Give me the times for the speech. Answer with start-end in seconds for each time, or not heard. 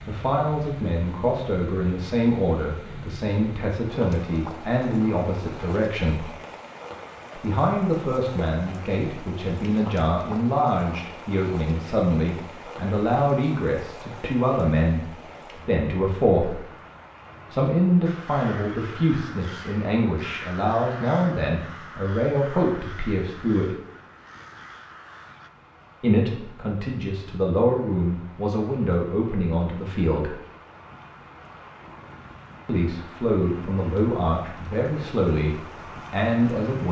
0.1-6.3, 7.3-16.6, 17.5-23.7, 26.0-30.3, 32.6-36.8.